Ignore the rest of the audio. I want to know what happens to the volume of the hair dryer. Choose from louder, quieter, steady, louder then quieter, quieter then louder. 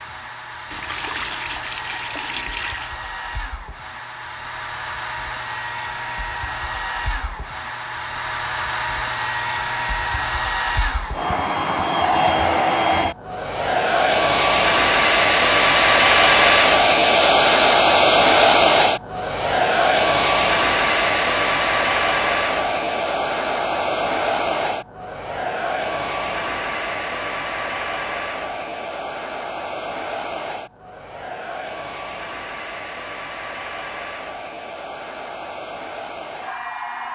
louder then quieter.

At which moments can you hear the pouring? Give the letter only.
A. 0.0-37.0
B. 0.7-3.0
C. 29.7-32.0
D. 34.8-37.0
B.